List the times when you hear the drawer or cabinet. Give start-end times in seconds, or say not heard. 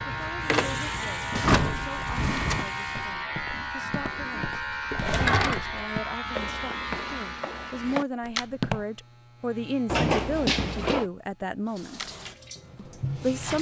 1.3-2.7, 4.9-5.6, 9.8-11.1.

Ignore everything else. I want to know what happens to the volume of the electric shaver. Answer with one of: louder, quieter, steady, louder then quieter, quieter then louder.
quieter.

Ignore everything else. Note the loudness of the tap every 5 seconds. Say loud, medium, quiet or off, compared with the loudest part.
loud, off, loud.